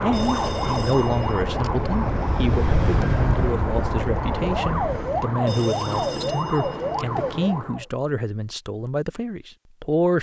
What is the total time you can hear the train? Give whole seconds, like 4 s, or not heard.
5 s.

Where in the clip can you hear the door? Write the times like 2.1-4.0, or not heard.
not heard.